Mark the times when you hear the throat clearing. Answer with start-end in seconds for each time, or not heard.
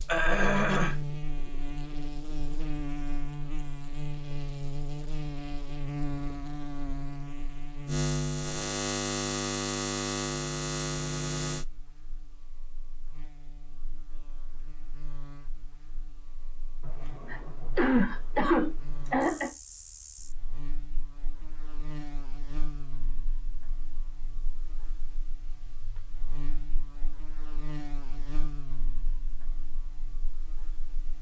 0.1-0.9, 16.9-19.5.